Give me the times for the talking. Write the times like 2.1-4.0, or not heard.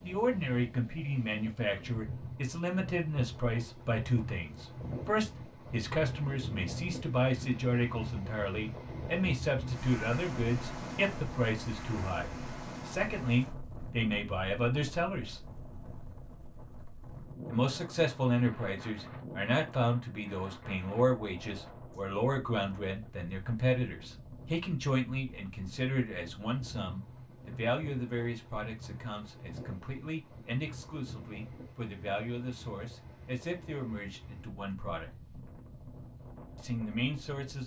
0.0-15.4, 17.4-35.1, 36.5-37.6.